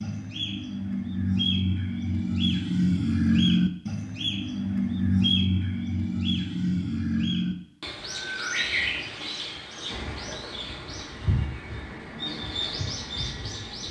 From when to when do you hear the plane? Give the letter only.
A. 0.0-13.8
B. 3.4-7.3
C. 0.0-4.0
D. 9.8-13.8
D.